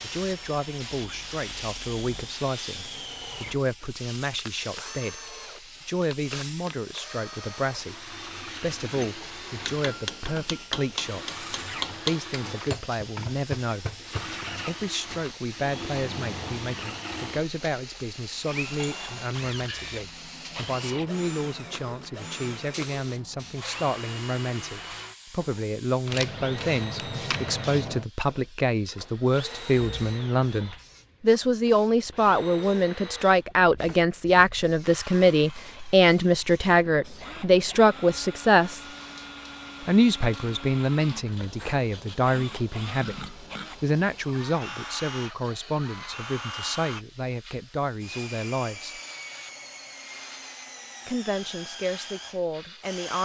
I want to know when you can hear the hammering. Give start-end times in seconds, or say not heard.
9.0-14.4.